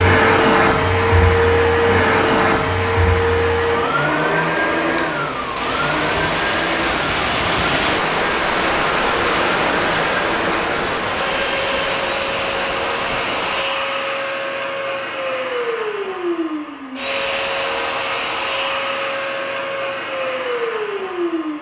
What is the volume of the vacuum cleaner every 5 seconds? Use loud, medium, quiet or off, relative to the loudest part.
loud, medium, medium, medium, medium.